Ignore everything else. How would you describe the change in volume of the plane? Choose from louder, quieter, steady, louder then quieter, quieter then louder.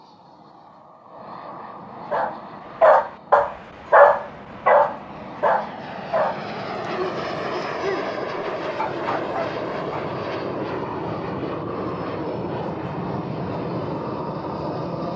louder.